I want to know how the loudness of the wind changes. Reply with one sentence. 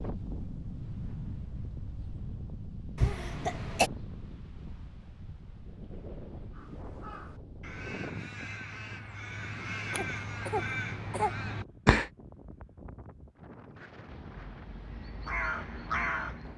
The loudness of the wind goes down.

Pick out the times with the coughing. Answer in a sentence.
You can hear the coughing from 3.0 to 3.9 s and from 9.9 to 11.3 s.